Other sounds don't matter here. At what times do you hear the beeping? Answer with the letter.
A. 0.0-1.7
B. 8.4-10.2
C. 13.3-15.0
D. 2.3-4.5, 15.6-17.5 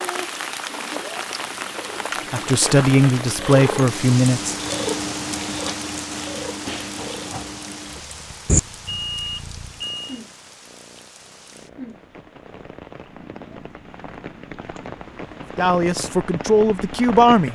B.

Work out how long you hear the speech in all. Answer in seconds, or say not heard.
4 s.